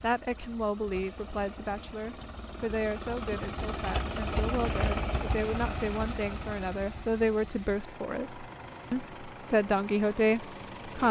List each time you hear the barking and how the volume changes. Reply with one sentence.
You can't hear the barking here.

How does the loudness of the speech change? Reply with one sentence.
The volume of the speech goes up.